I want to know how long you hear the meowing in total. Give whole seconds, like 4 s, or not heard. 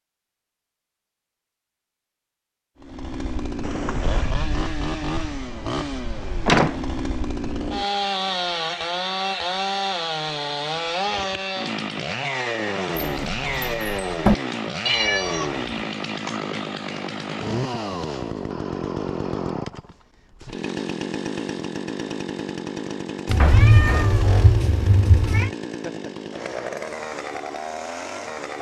4 s.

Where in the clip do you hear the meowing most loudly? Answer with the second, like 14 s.
24 s.